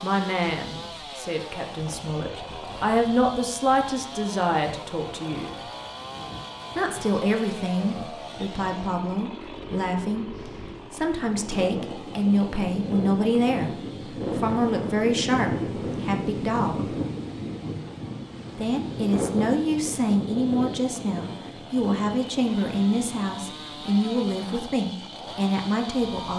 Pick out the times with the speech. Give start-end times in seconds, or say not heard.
0.0-5.7, 6.8-16.9, 18.6-26.3.